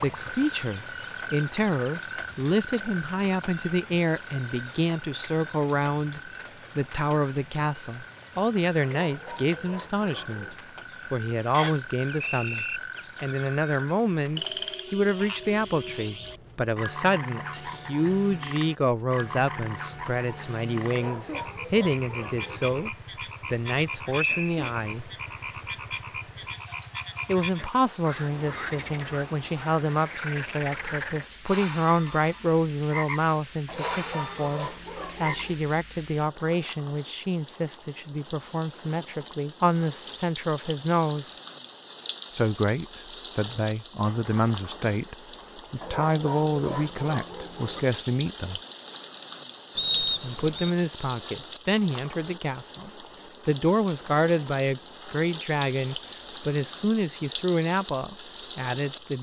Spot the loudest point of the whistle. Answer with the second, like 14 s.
50 s.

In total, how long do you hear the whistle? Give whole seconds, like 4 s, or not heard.
3 s.